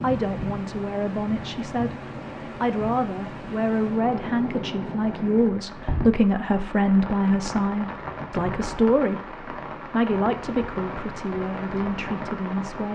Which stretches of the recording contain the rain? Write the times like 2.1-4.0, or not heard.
0.0-12.9.